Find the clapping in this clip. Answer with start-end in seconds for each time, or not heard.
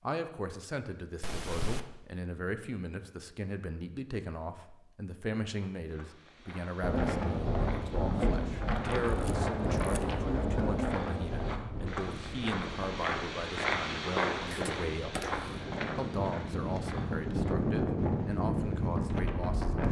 not heard.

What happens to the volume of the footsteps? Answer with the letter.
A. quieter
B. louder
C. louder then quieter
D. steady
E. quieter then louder
C.